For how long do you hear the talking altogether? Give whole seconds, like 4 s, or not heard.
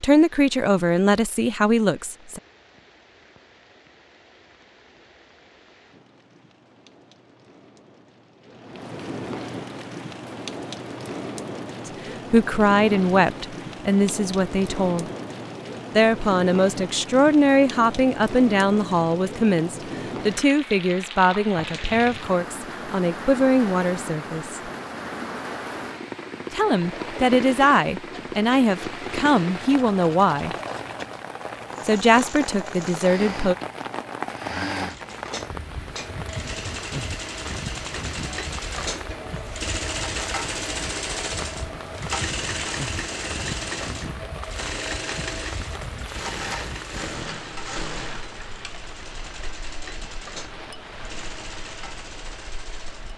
20 s.